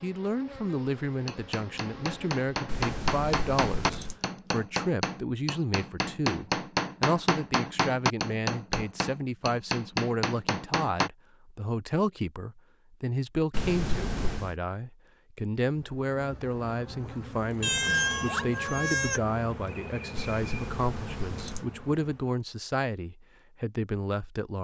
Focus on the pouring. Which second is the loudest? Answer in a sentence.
The volume of the pouring peaks at 14 seconds.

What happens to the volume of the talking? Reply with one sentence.
The volume of the talking stays about the same.